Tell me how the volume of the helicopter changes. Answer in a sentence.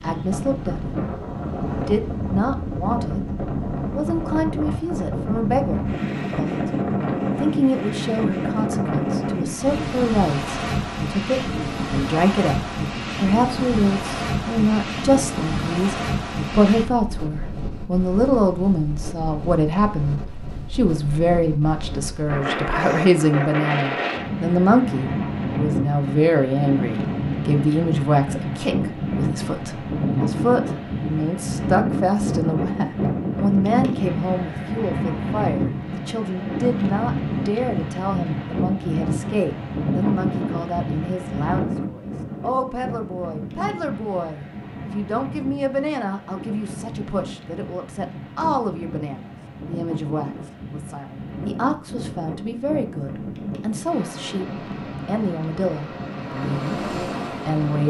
The volume of the helicopter goes up.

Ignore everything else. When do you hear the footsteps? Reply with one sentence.
You can't hear the footsteps here.